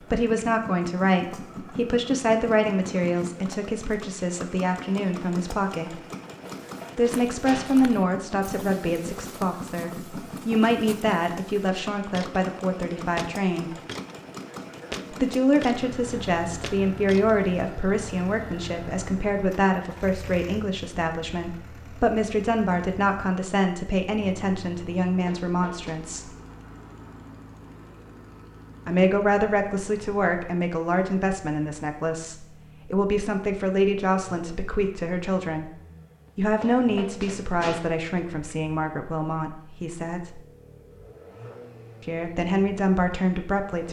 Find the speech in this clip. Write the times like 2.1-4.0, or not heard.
0.1-6.0, 7.0-13.7, 15.1-26.3, 28.9-35.7, 36.4-40.4, 42.0-43.8.